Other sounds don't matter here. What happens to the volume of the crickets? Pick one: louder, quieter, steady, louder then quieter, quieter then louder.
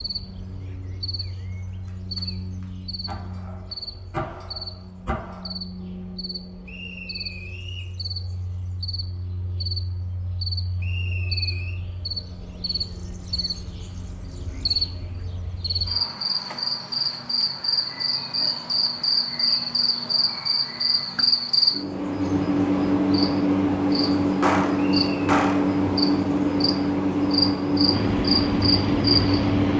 louder.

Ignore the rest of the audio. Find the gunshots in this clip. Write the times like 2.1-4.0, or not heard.
1.9-5.5, 24.4-25.8.